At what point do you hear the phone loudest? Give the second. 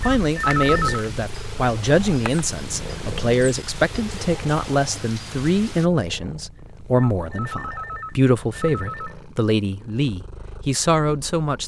1 s.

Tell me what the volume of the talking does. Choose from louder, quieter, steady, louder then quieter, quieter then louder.
steady.